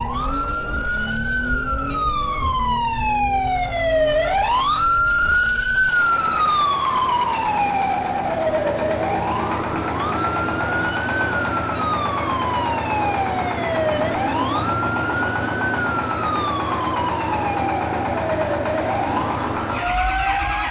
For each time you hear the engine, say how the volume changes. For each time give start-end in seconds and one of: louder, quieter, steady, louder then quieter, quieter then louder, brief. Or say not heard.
0.0-20.6 louder.